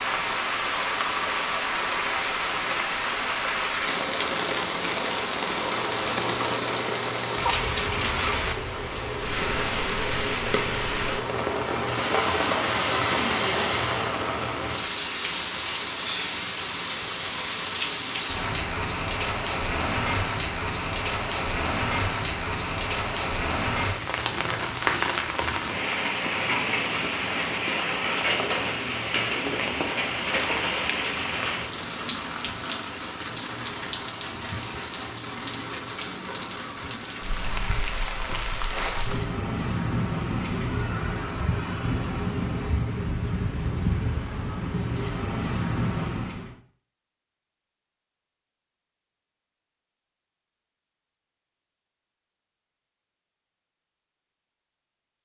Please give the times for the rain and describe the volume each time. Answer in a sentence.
You can hear the rain from 0.0 to 46.5 s, at a steady volume.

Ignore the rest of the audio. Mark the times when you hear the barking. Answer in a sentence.
You can't hear the barking here.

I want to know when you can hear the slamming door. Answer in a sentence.
The slamming door can't be heard in this clip.